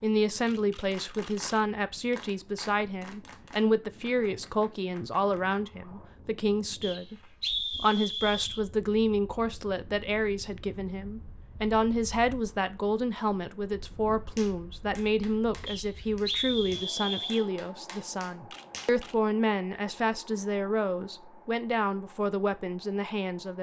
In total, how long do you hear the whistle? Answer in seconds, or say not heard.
4 s.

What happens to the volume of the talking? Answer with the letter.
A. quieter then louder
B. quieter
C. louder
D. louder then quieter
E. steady
E.